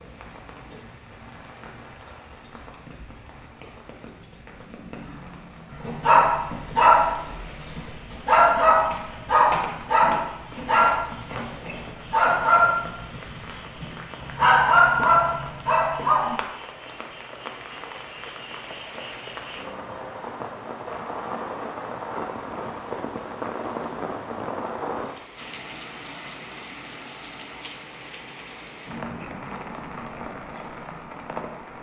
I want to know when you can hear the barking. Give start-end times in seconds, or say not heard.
5.8-16.4.